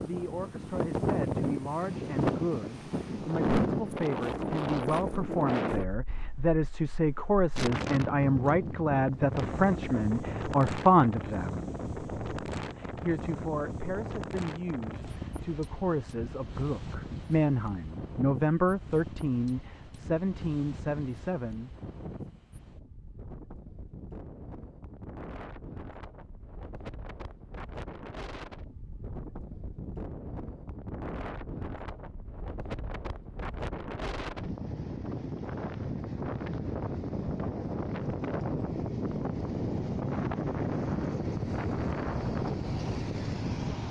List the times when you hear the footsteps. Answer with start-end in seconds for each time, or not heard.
not heard.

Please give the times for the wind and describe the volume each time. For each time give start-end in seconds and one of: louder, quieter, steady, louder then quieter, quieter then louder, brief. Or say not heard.
0.0-43.8 quieter then louder.